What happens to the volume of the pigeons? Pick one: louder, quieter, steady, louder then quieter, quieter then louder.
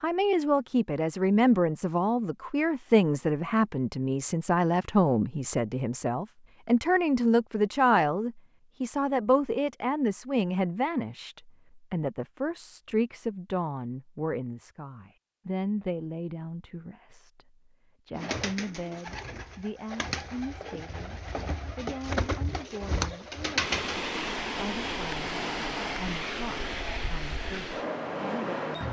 louder.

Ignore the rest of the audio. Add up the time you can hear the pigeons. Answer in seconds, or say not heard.
6 s.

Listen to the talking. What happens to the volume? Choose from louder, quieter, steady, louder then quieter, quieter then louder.
quieter.